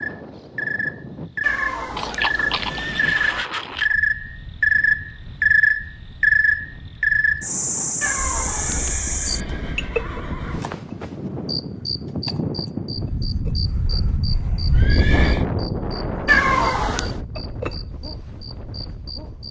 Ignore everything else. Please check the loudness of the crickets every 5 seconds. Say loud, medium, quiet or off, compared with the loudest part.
loud, loud, quiet, quiet.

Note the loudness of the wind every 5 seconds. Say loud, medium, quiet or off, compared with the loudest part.
medium, medium, loud, loud.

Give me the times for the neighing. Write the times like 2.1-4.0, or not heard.
1.9-3.9, 8.3-10.7, 14.7-15.4.